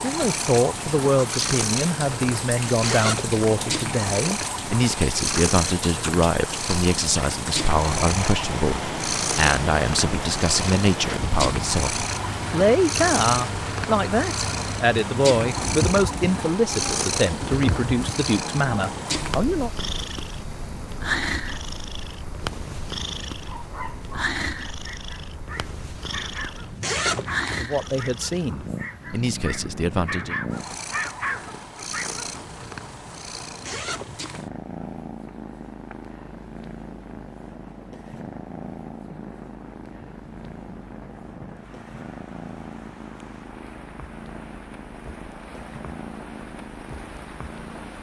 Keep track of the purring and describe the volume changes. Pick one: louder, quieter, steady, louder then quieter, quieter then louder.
quieter.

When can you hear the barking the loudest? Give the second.
31 s.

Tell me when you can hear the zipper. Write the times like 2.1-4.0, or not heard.
2.8-3.6, 26.8-27.6, 33.6-34.5.